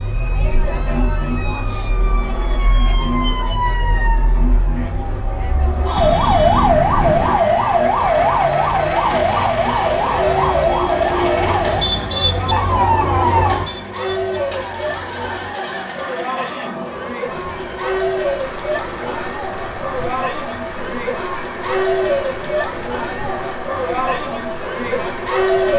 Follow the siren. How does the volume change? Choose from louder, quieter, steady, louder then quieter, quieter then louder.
louder then quieter.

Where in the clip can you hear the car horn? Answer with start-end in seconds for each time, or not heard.
6.0-7.4.